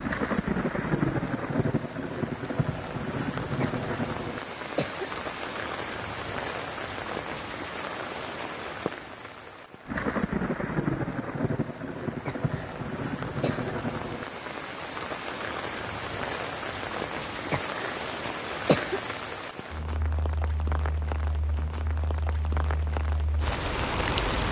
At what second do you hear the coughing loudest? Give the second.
19 s.